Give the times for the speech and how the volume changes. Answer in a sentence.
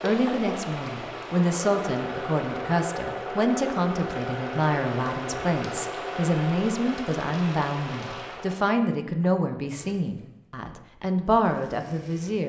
The speech can be heard from 0.0 to 12.4 s, at a steady volume.